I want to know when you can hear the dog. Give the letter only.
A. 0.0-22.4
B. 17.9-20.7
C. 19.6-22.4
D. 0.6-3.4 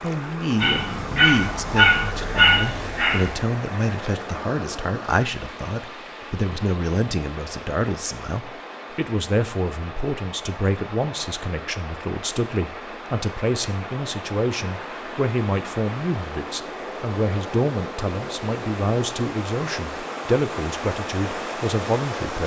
D.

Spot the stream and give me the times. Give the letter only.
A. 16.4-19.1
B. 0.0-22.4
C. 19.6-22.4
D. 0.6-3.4
B.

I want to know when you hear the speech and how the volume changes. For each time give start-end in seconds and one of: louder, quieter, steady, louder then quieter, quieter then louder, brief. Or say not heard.
0.0-22.4 steady.